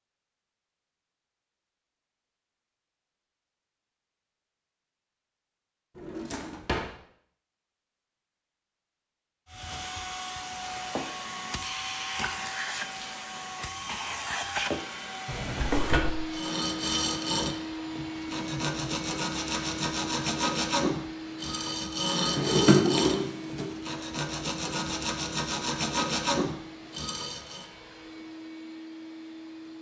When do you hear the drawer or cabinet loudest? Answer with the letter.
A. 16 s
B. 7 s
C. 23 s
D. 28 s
C.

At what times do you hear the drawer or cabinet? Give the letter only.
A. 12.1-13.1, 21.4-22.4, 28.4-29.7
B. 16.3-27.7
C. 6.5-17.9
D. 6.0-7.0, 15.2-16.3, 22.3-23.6
D.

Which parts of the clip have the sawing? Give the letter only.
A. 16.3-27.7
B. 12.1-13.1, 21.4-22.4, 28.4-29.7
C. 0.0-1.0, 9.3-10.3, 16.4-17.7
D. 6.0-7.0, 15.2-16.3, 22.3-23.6
A.